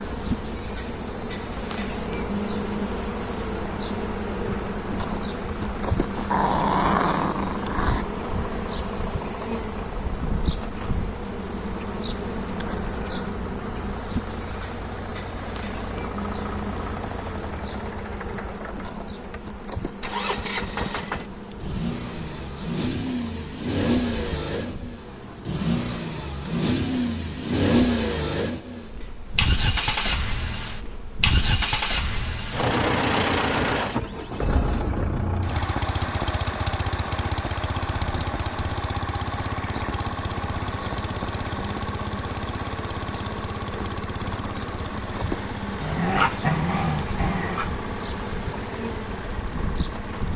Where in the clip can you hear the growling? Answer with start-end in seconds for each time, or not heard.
6.2-8.1, 45.8-47.7.